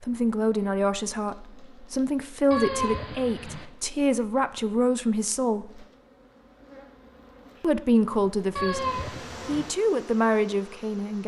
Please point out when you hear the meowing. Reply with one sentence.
You can hear the meowing from 2.5 to 3.6 s and from 8.6 to 9.7 s.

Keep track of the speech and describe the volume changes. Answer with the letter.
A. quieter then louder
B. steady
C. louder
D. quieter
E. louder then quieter
B.